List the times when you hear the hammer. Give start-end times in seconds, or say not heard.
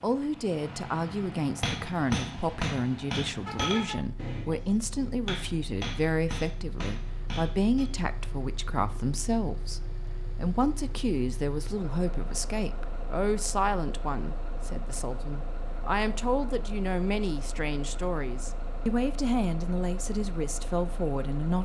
1.6-7.8.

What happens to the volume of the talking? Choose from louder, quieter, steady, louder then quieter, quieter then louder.
steady.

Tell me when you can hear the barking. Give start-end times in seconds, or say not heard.
not heard.